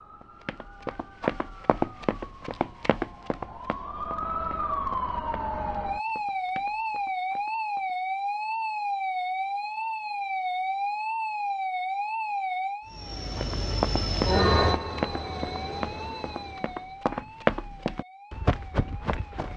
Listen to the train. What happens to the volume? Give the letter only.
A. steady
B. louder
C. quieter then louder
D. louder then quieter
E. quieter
D.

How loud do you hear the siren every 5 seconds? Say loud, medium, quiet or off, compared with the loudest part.
medium, loud, loud, quiet.